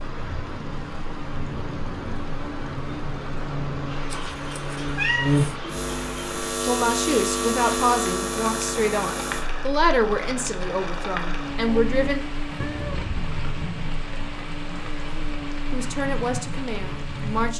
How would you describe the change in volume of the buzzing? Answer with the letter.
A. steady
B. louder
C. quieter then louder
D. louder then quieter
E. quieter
D.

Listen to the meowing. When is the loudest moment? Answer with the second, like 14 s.
5 s.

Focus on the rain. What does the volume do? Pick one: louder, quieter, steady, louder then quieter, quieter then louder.
steady.